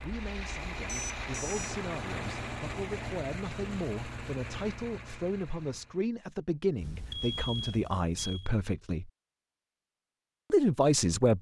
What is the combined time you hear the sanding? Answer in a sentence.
You can't hear the sanding here.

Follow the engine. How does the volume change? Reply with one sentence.
The loudness of the engine goes down.